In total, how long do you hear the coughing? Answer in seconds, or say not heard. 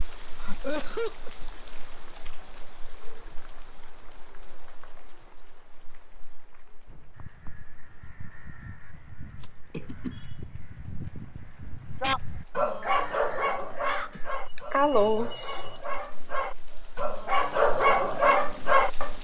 3 s.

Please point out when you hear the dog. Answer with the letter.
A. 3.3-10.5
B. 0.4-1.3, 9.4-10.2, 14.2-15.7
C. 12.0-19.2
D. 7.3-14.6
C.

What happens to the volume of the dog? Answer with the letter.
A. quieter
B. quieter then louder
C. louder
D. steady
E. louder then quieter
B.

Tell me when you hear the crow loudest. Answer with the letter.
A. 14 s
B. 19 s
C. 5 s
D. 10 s
A.